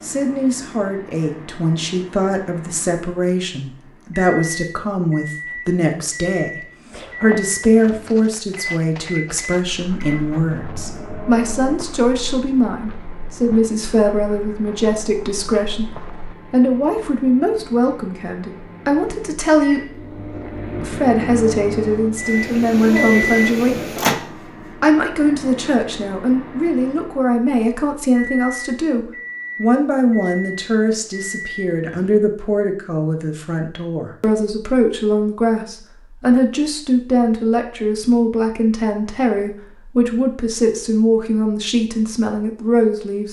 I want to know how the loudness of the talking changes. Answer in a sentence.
The volume of the talking stays about the same.